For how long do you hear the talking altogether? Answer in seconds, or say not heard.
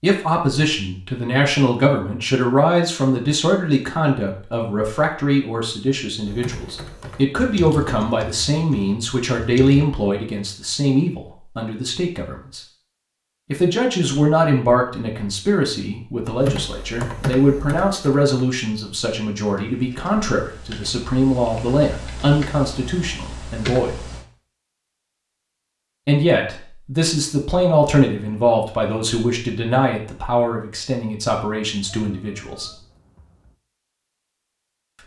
30 s.